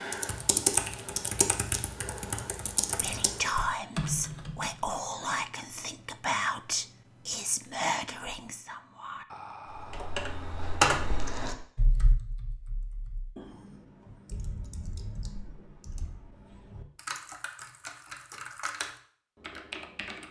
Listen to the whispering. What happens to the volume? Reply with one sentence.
The volume of the whispering goes down.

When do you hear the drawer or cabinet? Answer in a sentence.
The drawer or cabinet can't be heard in this clip.